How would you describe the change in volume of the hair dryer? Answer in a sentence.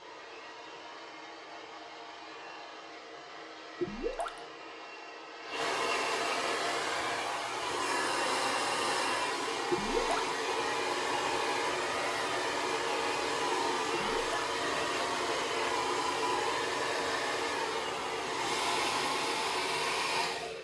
The loudness of the hair dryer goes up.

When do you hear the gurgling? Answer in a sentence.
The gurgling can be heard from 3.8 to 4.4 s, from 9.7 to 10.2 s and from 13.9 to 14.3 s.